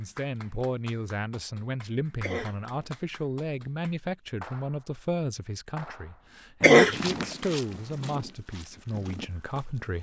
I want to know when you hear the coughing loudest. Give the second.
7 s.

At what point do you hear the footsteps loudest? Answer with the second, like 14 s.
7 s.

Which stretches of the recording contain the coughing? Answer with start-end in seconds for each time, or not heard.
2.2-3.0, 6.6-7.2.